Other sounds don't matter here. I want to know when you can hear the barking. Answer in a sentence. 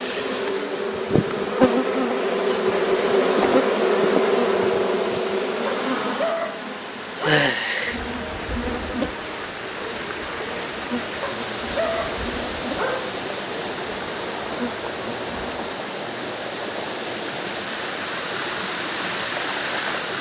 The barking can be heard from 5.7 to 7.5 s and from 11.2 to 13.2 s.